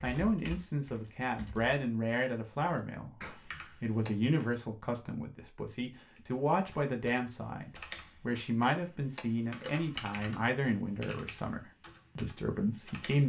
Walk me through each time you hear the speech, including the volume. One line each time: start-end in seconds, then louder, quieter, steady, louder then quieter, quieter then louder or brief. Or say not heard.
0.0-13.2 steady.